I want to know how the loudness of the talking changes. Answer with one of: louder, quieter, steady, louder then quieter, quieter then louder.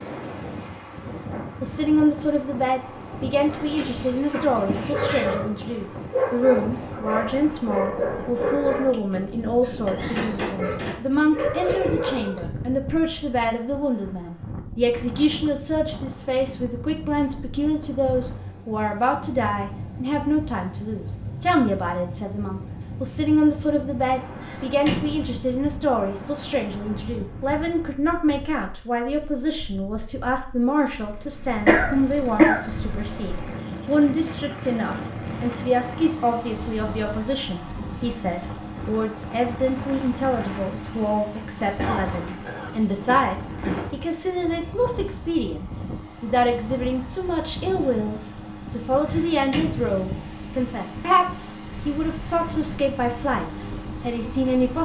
steady.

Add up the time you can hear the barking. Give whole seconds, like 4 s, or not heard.
9 s.